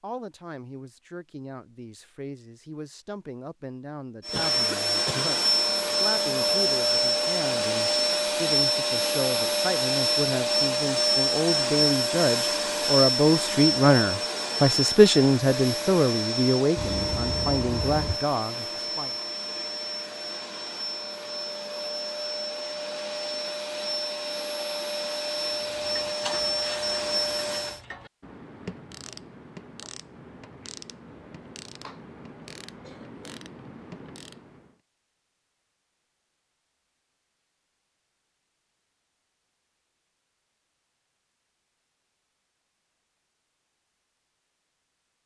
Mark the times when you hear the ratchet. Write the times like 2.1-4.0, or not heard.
25.4-34.8.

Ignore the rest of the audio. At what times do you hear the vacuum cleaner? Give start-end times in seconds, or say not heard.
4.2-27.8.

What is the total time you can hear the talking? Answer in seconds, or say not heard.
19 s.